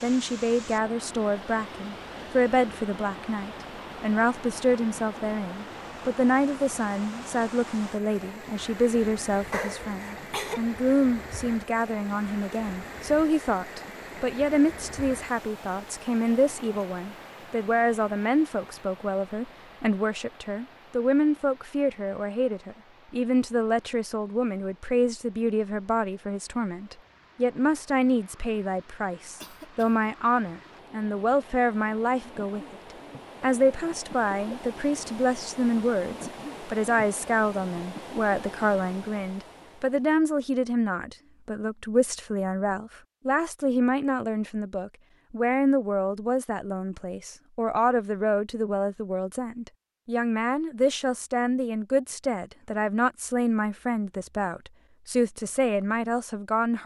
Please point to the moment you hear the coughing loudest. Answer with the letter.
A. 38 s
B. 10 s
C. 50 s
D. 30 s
B.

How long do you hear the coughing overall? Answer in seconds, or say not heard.
2 s.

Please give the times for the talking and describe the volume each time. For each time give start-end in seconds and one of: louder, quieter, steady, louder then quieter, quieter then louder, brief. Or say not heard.
0.0-32.8 steady
33.4-56.8 steady.